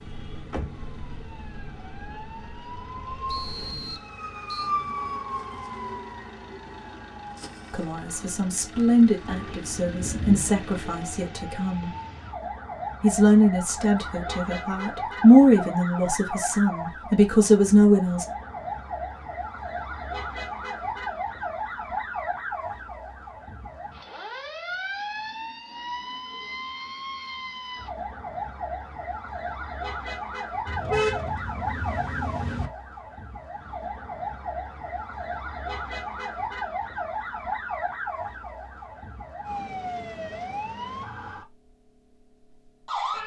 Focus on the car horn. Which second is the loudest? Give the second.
31 s.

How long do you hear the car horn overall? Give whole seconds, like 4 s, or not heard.
2 s.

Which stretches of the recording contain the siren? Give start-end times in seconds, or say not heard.
0.0-43.2.